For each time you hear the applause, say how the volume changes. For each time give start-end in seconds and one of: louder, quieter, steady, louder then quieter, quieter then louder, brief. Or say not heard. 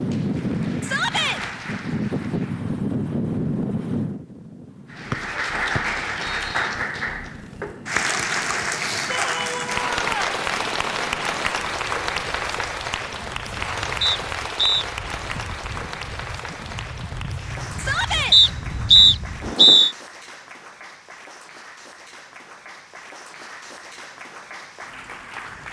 0.0-2.7 brief
4.9-25.6 quieter.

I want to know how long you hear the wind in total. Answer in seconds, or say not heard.
20 s.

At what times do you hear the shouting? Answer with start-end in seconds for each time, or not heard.
0.8-1.4, 9.1-10.4, 17.8-18.4.